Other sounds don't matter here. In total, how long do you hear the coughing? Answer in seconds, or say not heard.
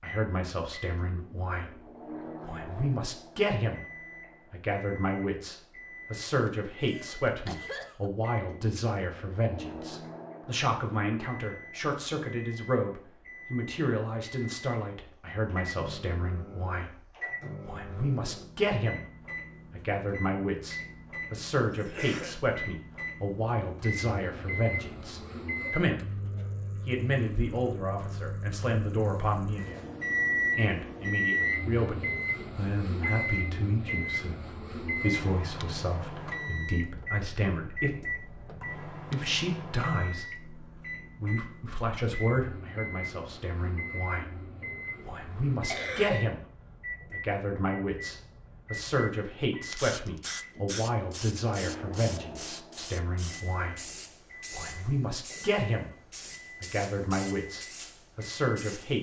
3 s.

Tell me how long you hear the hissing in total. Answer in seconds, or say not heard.
9 s.